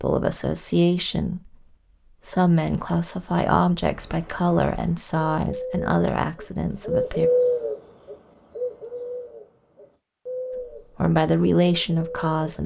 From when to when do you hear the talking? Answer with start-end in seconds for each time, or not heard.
0.0-7.3, 10.6-12.6.